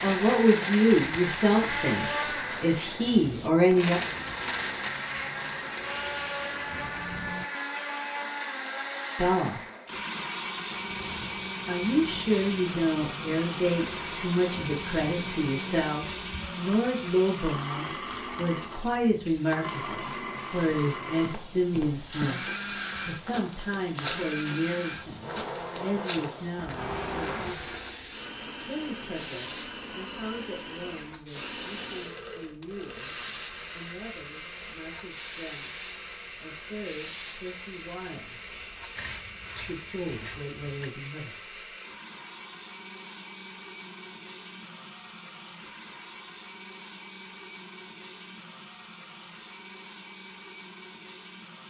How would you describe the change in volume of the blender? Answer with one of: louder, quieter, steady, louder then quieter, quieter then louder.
quieter.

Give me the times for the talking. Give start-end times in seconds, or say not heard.
0.0-4.0, 9.2-9.6, 11.7-27.5, 28.6-38.4, 39.5-41.6.